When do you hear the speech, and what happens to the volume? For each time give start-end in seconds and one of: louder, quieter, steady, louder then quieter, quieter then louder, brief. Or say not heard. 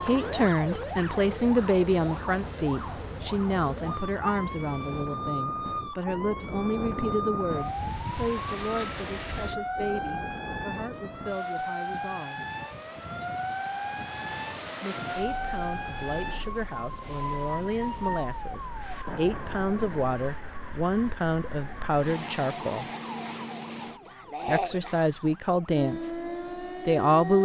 0.1-12.4 quieter
14.8-22.9 louder
24.4-26.1 brief
26.9-27.4 brief.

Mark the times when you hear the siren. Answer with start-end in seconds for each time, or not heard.
0.0-27.4.